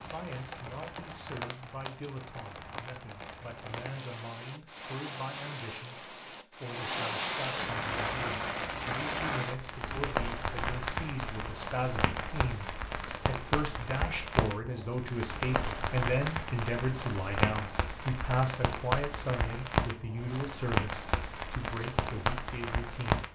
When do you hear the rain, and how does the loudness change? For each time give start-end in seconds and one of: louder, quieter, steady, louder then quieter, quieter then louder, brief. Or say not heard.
0.0-23.2 louder.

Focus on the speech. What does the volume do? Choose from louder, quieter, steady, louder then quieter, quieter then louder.
louder.